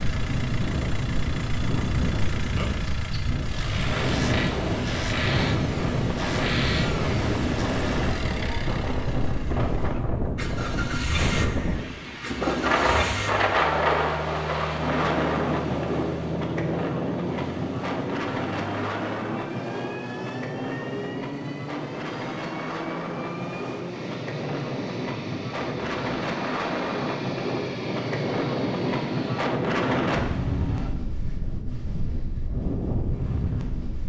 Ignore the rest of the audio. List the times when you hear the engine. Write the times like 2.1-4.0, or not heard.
0.0-30.9.